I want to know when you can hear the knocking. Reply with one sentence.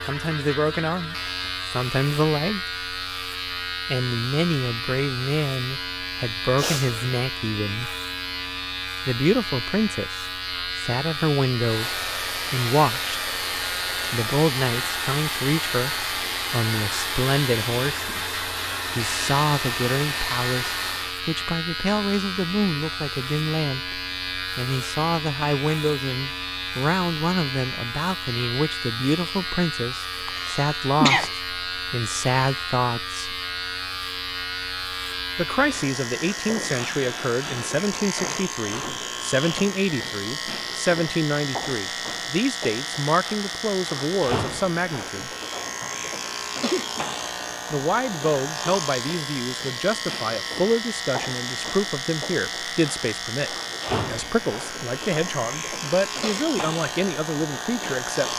The knocking can't be heard in this clip.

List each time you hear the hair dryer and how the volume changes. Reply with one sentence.
You can hear the hair dryer from 11.6 to 21.2 s, at a steady volume.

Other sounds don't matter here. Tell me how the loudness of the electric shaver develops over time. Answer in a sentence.
The loudness of the electric shaver stays about the same.